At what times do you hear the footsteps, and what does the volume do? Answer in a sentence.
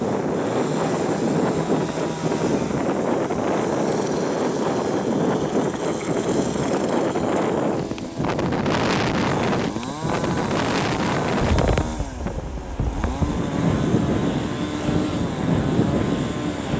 You can't hear the footsteps here.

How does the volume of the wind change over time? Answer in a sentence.
The loudness of the wind stays about the same.